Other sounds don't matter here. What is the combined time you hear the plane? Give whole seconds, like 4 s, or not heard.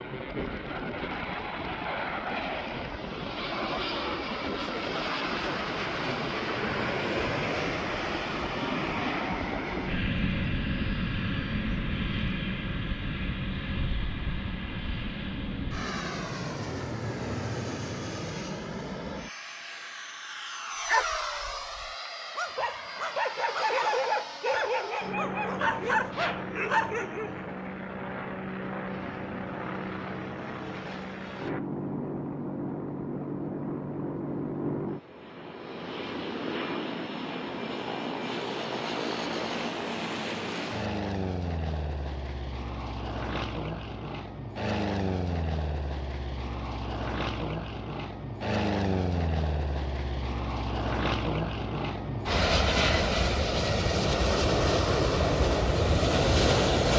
57 s.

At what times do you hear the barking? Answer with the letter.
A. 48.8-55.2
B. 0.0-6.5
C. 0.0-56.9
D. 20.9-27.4
D.